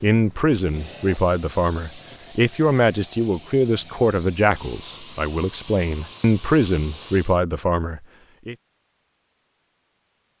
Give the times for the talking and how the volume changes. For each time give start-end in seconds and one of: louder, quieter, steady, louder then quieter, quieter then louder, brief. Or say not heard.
0.0-8.6 steady.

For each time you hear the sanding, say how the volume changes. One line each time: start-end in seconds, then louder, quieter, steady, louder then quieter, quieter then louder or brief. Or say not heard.
not heard.